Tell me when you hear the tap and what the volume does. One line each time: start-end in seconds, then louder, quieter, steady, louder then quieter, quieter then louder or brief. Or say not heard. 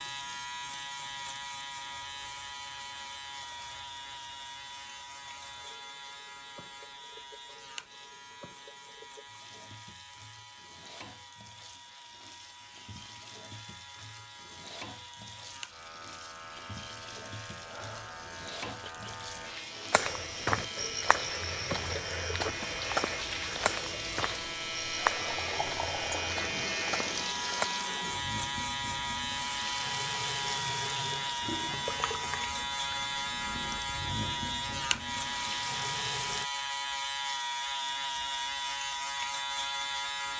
0.0-36.5 louder.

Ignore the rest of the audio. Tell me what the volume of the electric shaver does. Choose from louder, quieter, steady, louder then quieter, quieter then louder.
quieter then louder.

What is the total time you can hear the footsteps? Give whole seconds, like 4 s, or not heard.
8 s.